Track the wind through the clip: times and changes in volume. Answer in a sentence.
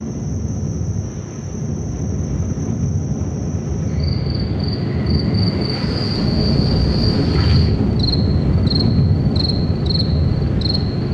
You can hear the wind from 0.0 to 11.0 s, getting louder.